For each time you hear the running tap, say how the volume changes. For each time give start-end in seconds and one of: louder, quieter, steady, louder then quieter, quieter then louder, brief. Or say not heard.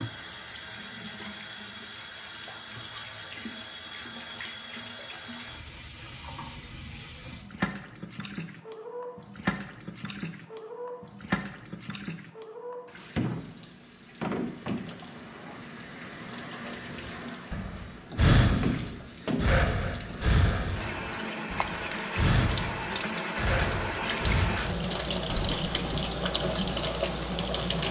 0.0-27.8 louder.